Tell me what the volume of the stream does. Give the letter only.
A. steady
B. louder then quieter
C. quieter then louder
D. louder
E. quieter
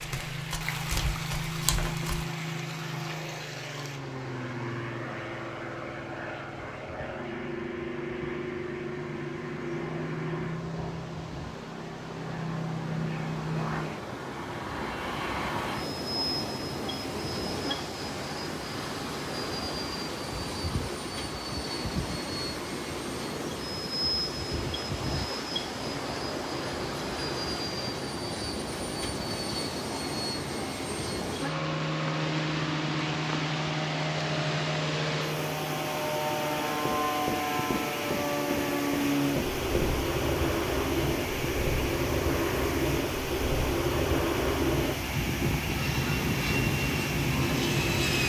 D.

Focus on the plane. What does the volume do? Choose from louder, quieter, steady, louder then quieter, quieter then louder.
louder.